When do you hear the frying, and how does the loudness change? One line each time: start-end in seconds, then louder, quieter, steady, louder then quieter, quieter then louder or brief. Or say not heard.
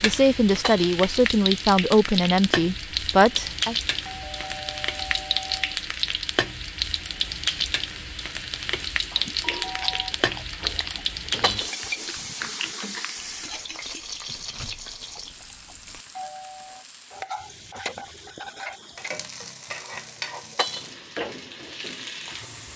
0.0-22.7 quieter.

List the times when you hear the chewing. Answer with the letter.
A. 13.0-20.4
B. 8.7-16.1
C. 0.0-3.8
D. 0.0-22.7
B.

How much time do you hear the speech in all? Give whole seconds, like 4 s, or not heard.
4 s.